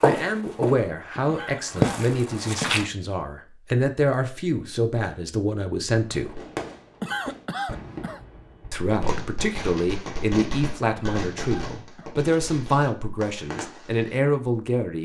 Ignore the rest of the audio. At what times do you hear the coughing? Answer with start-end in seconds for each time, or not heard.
1.2-2.5, 7.0-8.2, 10.9-12.2.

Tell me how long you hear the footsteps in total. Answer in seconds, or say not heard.
3 s.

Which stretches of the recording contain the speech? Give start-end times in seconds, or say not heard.
0.0-6.4, 8.7-14.9.